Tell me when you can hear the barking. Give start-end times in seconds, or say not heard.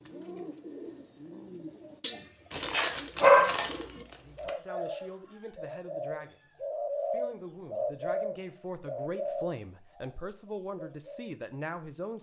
2.5-3.9.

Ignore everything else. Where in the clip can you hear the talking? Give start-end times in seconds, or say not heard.
4.2-12.1.